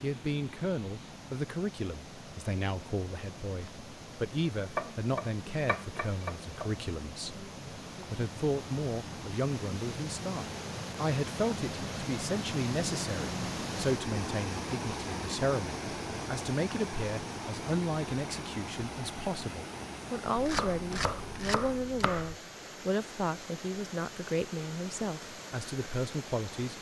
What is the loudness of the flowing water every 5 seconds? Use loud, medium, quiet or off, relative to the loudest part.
medium, medium, loud, loud, medium, medium.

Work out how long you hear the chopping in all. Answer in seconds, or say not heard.
4 s.